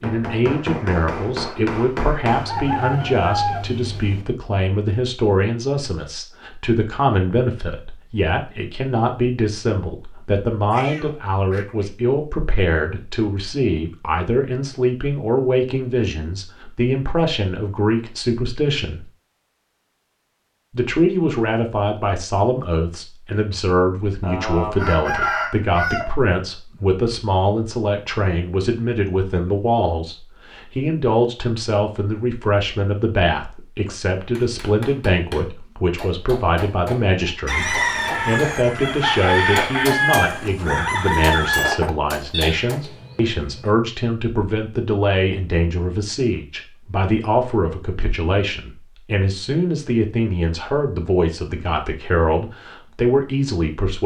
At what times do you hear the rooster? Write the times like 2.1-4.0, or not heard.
2.3-4.2, 24.2-26.1, 37.5-41.8.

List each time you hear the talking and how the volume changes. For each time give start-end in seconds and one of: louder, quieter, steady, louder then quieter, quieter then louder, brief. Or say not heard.
0.0-19.1 steady
20.7-54.0 steady.